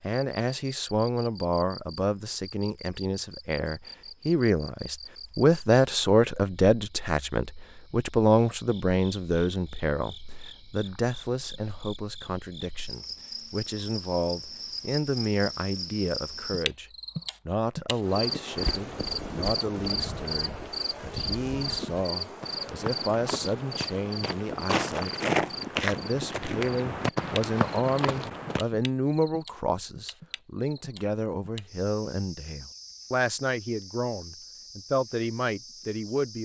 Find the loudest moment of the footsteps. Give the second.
25 s.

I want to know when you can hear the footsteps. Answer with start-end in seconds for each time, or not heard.
18.6-28.6.